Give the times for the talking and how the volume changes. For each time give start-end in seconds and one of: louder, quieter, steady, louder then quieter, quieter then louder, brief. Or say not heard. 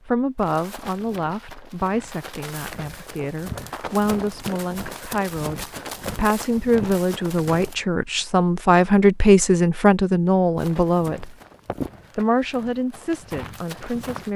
0.1-11.3 louder
12.2-14.3 brief.